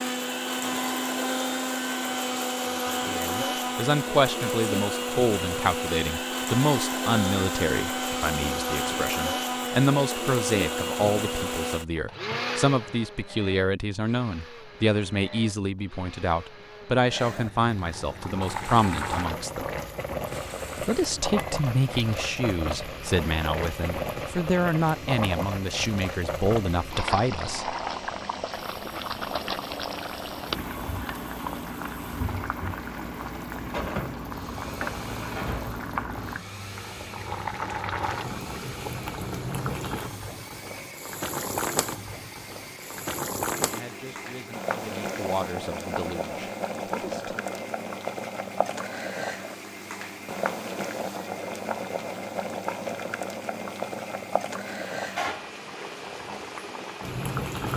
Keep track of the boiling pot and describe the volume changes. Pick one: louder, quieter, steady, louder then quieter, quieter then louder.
steady.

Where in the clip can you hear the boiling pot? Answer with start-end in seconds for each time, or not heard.
17.1-57.7.